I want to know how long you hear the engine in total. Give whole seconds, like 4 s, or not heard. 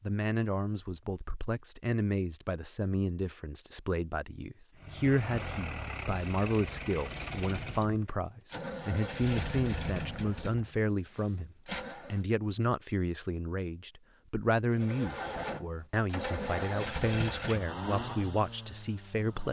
12 s.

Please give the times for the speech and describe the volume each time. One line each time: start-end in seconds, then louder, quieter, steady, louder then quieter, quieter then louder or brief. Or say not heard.
0.0-19.4 steady.